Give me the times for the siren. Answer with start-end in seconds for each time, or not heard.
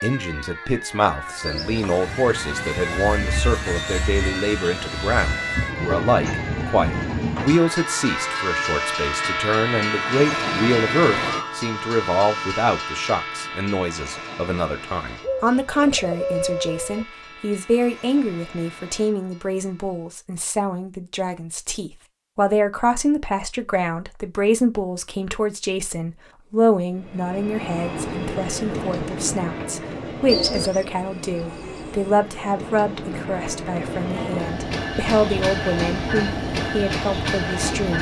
0.0-11.5.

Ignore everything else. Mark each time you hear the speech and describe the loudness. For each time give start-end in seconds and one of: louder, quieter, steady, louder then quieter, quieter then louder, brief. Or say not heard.
0.0-37.9 steady.